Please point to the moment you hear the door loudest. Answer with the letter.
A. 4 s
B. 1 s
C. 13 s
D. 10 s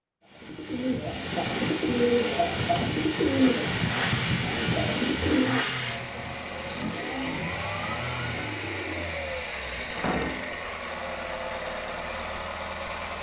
D.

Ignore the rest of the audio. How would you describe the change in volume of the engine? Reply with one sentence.
The loudness of the engine stays about the same.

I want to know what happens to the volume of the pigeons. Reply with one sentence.
The loudness of the pigeons goes down.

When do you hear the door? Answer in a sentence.
The door can be heard from 2.5 to 3.0 s and from 9.9 to 10.6 s.